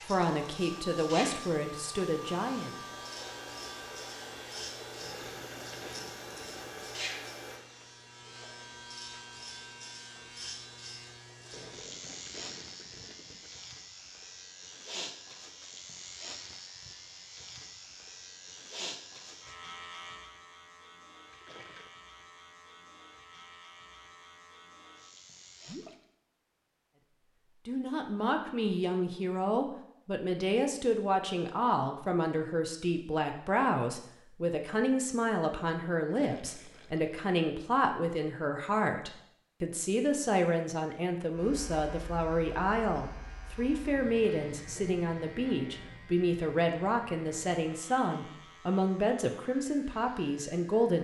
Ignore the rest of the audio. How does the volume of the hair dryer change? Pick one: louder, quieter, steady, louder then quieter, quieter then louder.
steady.